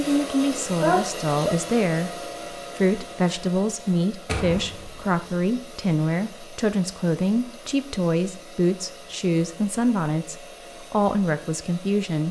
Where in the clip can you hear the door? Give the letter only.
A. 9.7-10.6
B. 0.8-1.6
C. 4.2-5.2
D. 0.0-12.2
C.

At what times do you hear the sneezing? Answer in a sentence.
You can hear the sneezing from 0.8 to 1.6 s.